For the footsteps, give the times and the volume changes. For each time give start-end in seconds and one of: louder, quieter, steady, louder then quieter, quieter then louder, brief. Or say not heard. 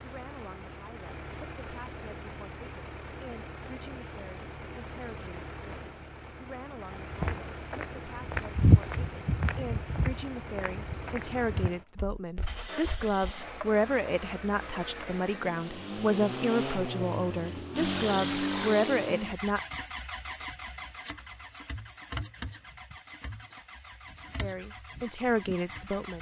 7.1-13.1 louder then quieter.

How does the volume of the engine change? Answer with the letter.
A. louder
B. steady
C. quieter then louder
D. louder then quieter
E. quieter
D.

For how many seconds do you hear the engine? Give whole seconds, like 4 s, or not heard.
26 s.